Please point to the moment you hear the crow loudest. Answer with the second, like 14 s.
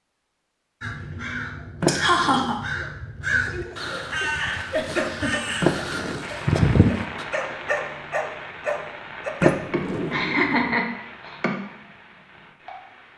7 s.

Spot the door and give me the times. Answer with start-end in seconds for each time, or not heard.
1.8-2.5, 5.6-6.2, 9.4-10.8.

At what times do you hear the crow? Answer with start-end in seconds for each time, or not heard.
0.8-7.2.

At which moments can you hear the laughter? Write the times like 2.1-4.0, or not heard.
1.9-2.6, 4.7-5.5, 9.7-11.5.